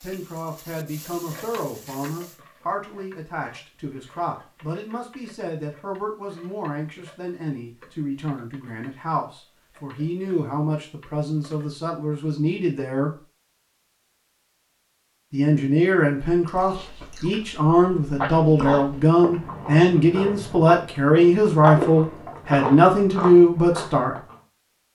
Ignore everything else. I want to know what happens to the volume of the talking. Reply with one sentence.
The volume of the talking goes up.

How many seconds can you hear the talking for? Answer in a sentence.
The talking can be heard for 22 seconds in total.